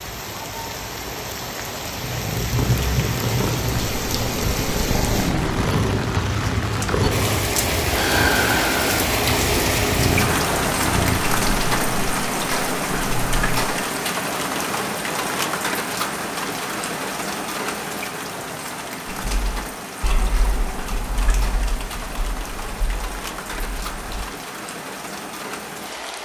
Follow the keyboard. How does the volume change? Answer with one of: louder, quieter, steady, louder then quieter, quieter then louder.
quieter.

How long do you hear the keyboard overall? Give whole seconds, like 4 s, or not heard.
5 s.